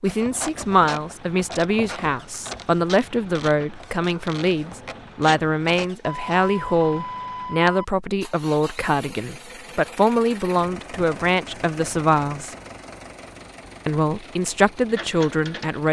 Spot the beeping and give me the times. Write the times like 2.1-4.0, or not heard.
6.0-7.8.